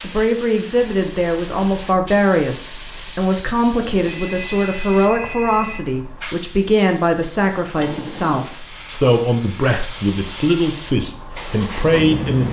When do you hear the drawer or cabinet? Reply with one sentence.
The drawer or cabinet can be heard from 7.8 to 8.6 s.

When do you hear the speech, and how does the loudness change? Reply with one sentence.
You can hear the speech from 0.0 to 12.4 s, at a steady volume.